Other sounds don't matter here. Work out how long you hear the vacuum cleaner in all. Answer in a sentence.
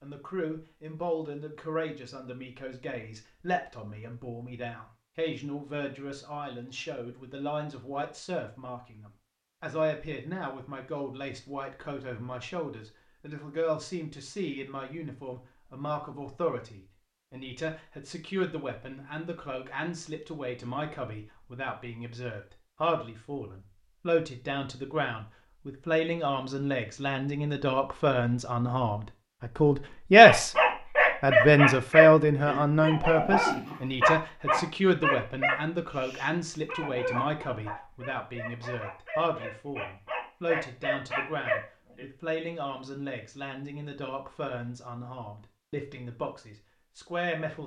The vacuum cleaner can't be heard in this clip.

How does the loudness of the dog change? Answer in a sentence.
The loudness of the dog goes down, then up.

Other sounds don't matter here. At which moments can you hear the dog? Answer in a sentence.
You can hear the dog from 30.2 to 42.0 s.